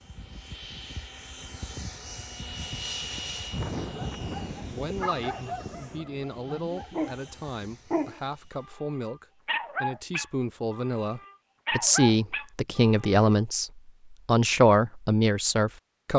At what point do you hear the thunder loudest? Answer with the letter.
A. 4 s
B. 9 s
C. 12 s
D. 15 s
A.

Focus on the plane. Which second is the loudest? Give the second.
3 s.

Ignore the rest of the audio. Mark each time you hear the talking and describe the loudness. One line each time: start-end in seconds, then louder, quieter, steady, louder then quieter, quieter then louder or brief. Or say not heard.
4.7-16.1 louder.